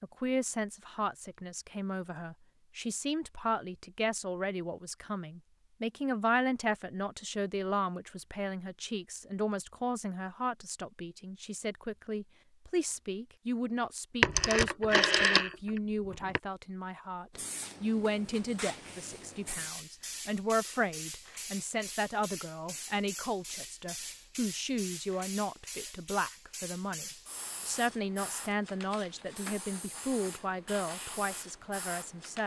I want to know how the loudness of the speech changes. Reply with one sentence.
The volume of the speech stays about the same.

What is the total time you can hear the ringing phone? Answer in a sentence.
The ringing phone can be heard for 2 seconds in total.